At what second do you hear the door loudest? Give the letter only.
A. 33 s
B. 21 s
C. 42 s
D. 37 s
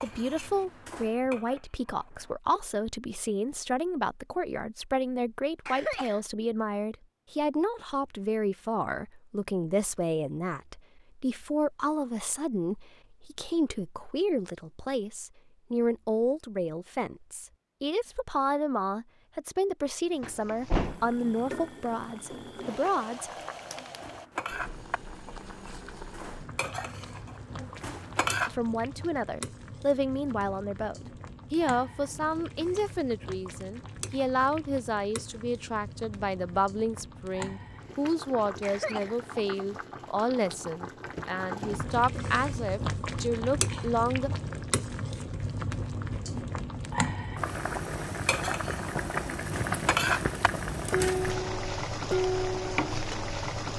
B.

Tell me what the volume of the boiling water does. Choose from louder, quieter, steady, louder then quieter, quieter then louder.
louder.